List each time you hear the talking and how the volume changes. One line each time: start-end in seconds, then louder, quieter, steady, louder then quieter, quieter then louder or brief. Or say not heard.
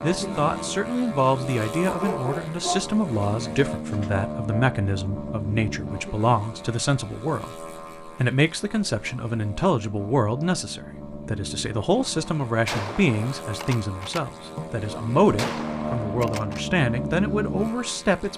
0.0-18.3 steady.